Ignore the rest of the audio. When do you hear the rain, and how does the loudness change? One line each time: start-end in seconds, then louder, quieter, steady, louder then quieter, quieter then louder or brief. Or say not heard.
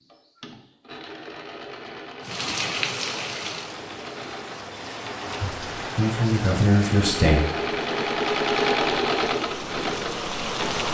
2.2-10.9 quieter then louder.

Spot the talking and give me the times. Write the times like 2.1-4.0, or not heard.
5.4-7.3.